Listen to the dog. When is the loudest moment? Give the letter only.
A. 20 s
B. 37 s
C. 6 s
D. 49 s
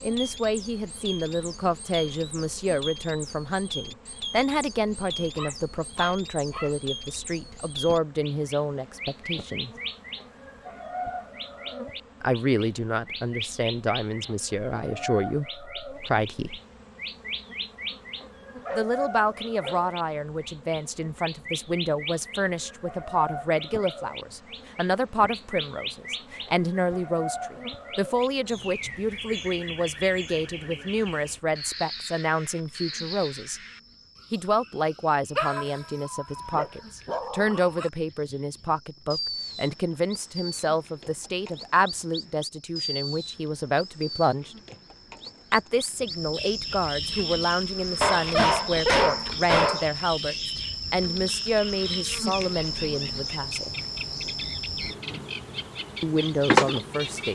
D.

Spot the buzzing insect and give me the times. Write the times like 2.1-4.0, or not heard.
0.0-57.3.